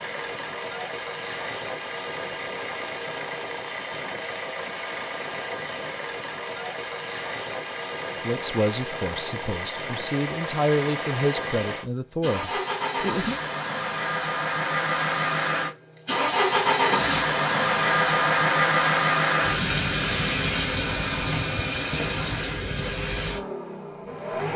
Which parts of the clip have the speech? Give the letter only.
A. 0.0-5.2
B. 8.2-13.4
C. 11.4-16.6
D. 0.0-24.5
B.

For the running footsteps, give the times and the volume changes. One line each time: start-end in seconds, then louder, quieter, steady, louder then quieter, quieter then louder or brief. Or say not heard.
not heard.